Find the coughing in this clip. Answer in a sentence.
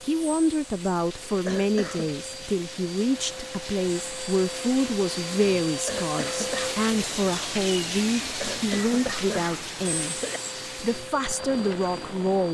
You can hear the coughing from 1.4 to 2.1 s, from 5.8 to 6.8 s and from 8.4 to 10.4 s.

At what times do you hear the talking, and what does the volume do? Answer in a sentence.
The talking can be heard from 0.0 to 12.4 s, at a steady volume.